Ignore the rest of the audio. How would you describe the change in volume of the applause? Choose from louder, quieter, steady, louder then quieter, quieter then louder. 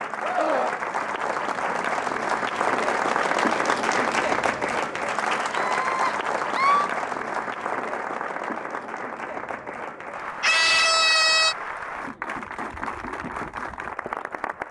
quieter.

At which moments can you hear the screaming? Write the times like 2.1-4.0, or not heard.
0.2-0.8, 5.5-6.9, 10.4-11.6.